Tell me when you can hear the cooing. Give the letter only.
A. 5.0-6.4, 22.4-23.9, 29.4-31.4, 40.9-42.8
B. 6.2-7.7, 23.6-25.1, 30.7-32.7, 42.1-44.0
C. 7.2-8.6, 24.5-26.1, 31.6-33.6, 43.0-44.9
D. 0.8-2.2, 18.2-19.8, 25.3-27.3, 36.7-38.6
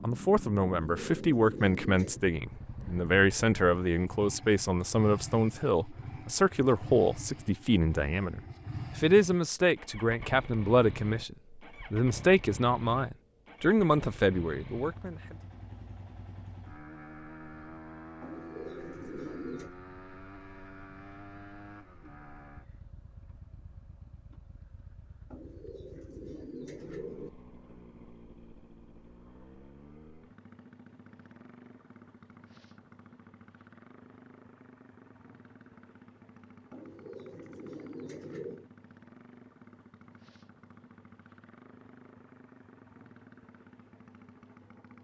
D.